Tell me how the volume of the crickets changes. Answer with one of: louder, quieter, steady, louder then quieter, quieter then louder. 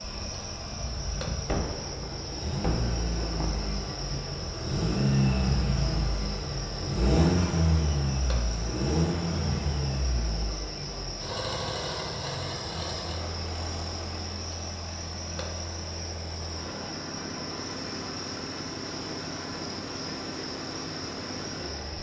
steady.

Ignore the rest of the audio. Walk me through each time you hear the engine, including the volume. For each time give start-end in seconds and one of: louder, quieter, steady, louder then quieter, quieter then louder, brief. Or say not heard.
0.0-21.9 louder then quieter.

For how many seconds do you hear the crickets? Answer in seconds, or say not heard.
22 s.